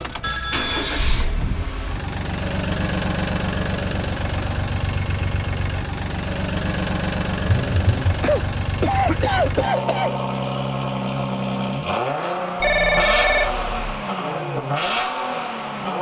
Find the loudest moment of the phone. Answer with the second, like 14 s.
13 s.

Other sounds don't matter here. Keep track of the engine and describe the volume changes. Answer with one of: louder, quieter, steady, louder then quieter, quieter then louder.
steady.